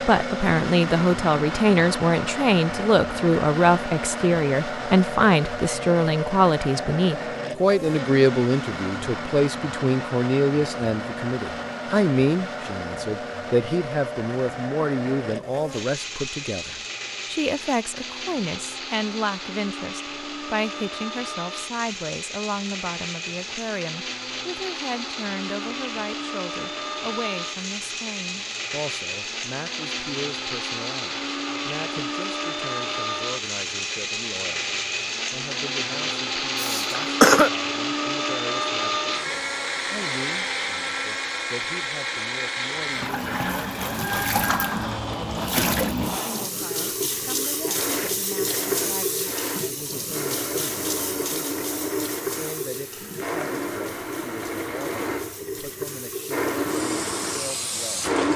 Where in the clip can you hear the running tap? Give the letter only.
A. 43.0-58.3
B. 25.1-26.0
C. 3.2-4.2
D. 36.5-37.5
A.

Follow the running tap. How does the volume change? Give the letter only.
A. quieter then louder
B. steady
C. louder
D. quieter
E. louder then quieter
D.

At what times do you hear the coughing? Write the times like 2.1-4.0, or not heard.
36.5-37.5.